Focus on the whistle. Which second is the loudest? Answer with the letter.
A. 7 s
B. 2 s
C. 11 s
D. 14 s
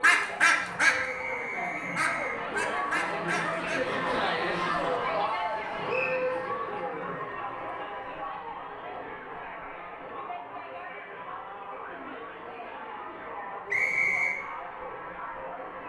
D.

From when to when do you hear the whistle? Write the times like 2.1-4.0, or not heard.
0.9-2.5, 5.8-6.3, 13.7-14.4.